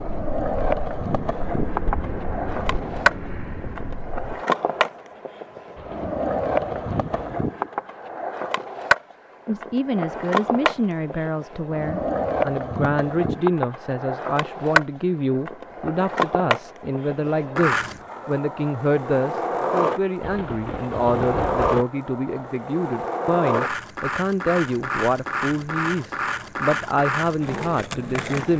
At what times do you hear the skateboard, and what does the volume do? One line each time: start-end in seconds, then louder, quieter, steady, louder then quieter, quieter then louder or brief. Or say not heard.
0.0-28.5 steady.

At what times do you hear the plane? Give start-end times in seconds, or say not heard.
0.0-4.5.